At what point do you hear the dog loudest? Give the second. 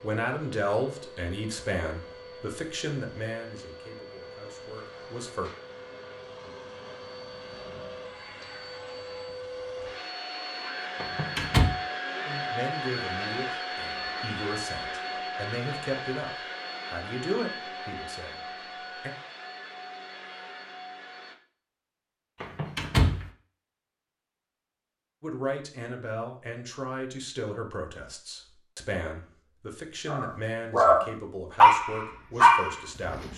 32 s.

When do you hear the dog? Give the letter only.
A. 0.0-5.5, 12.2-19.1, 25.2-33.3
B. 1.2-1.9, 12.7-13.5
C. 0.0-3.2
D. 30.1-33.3
D.